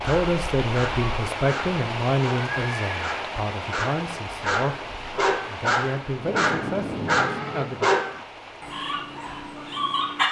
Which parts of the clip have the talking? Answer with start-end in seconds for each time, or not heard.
0.0-7.9.